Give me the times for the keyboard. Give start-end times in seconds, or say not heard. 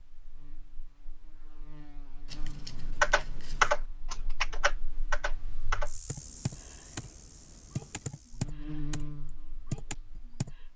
3.0-7.1, 7.8-9.1, 9.7-10.5.